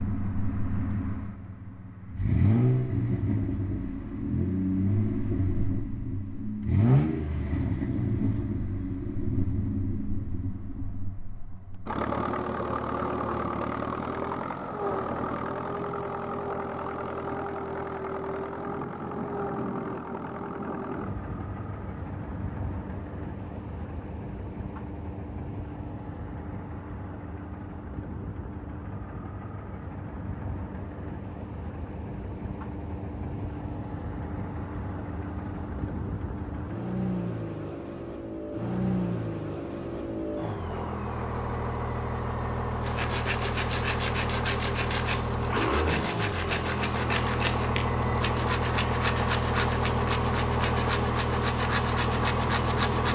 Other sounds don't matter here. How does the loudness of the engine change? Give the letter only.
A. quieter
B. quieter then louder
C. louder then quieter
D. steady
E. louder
B.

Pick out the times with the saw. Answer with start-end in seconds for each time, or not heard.
42.8-53.0.